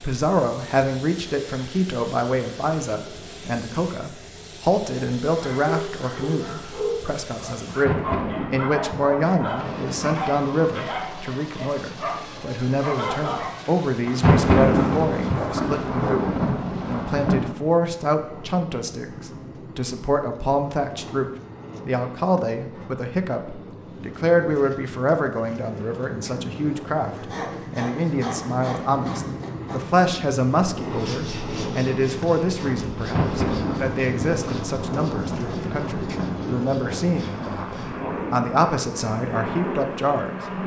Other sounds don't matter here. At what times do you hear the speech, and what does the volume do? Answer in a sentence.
You can hear the speech from 0.0 to 40.3 s, at a steady volume.